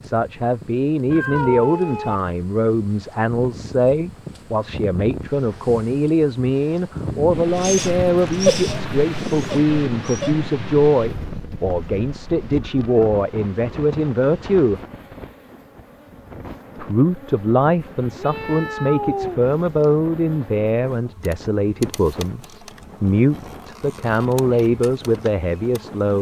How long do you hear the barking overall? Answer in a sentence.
You can hear the barking for 3 seconds altogether.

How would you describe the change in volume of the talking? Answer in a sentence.
The loudness of the talking stays about the same.